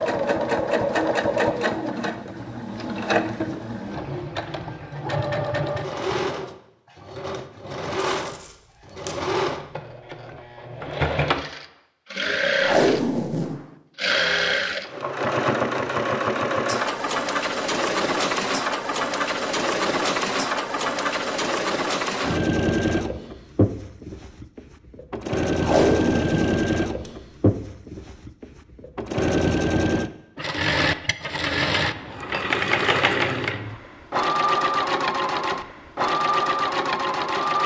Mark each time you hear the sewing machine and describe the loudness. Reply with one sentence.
You can hear the sewing machine from 0.0 to 37.6 s, at a steady volume.